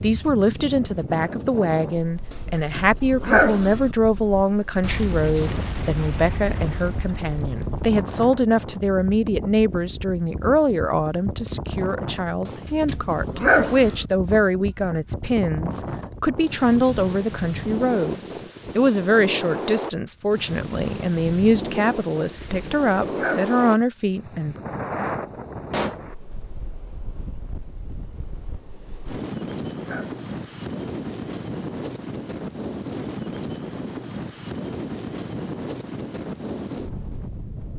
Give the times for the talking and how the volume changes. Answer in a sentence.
The talking can be heard from 0.0 to 24.6 s, at a steady volume.